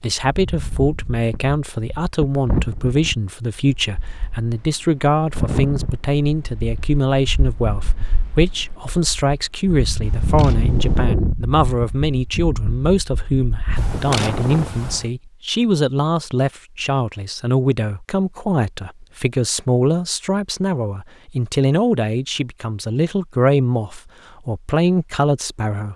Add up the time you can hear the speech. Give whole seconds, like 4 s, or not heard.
26 s.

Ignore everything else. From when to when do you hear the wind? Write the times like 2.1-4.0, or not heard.
0.2-14.7.